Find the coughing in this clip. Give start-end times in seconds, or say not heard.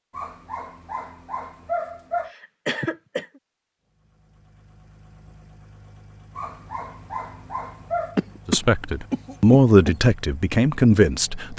2.2-3.4, 8.2-9.9.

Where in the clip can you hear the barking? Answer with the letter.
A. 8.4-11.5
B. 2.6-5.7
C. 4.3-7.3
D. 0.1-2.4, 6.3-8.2
D.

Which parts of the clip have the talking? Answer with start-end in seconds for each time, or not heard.
8.4-11.5.